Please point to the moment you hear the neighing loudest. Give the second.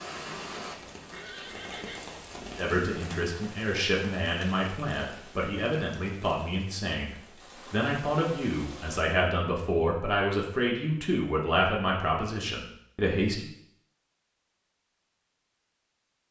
2 s.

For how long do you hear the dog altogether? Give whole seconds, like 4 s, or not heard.
not heard.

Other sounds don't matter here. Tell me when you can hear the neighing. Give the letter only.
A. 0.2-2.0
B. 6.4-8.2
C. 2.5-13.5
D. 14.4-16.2
A.